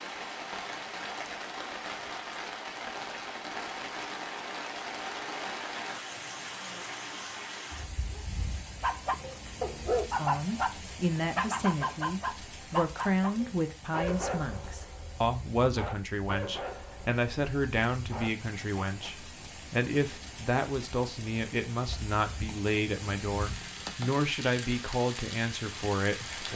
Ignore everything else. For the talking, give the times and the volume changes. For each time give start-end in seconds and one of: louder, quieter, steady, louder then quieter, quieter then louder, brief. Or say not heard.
10.2-26.5 steady.